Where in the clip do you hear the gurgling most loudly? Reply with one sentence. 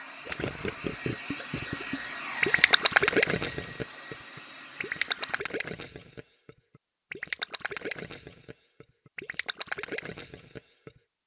The volume of the gurgling peaks at 3 seconds.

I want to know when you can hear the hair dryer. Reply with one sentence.
The hair dryer can be heard from 0.0 to 5.4 s.